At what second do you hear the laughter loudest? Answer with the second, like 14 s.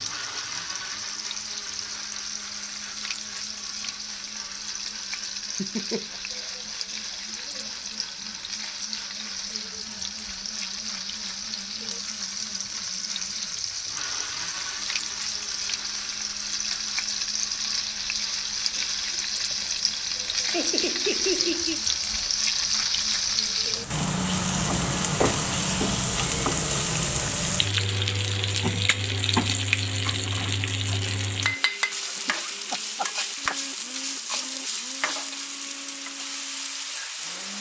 21 s.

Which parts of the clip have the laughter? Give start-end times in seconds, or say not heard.
5.5-6.2, 20.5-21.8, 32.0-33.5.